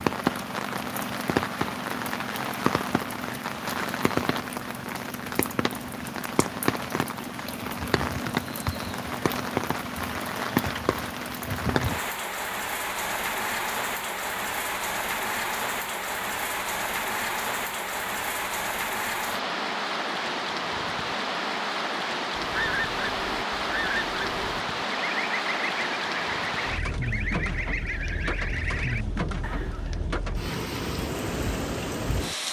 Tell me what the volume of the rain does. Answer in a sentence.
The volume of the rain stays about the same.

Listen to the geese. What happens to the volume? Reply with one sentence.
The volume of the geese stays about the same.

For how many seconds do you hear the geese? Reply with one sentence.
You can hear the geese for 8 seconds altogether.